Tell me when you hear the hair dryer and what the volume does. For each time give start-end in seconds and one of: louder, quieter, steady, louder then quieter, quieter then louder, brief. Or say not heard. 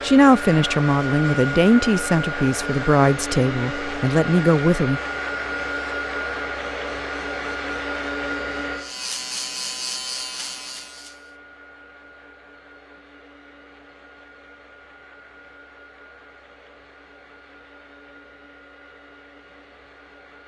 0.0-20.4 quieter.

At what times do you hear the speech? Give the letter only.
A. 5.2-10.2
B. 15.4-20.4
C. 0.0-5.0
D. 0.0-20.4
C.